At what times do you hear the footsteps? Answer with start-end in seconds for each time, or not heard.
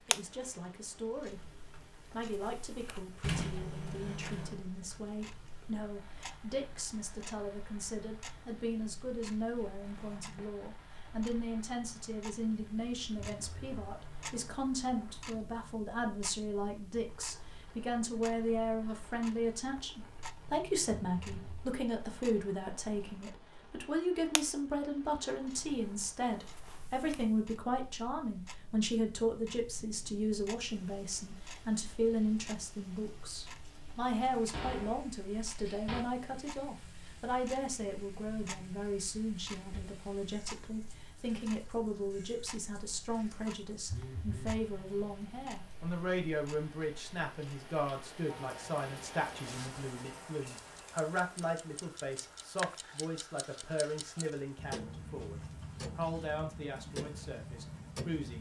not heard.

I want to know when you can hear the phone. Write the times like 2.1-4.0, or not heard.
13.2-13.9, 20.9-21.6, 43.9-44.6.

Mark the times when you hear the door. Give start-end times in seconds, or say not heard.
3.2-4.7, 34.5-36.0, 39.5-40.0.